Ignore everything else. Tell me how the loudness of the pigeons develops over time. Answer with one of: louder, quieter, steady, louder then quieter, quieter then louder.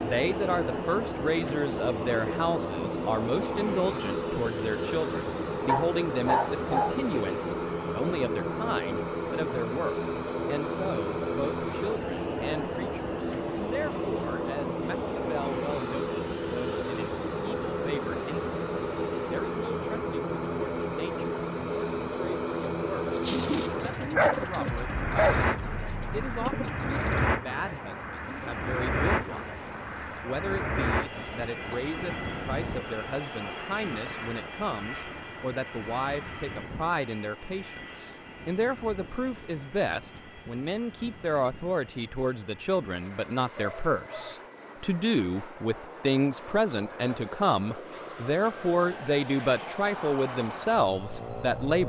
quieter.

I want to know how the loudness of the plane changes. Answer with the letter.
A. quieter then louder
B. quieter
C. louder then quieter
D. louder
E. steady
B.